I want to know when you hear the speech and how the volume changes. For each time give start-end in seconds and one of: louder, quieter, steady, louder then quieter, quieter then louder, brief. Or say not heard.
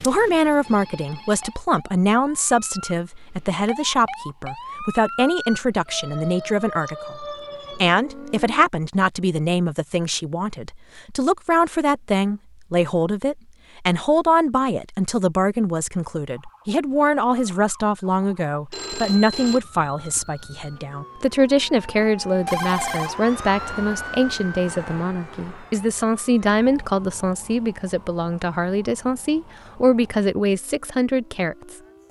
0.0-31.8 steady.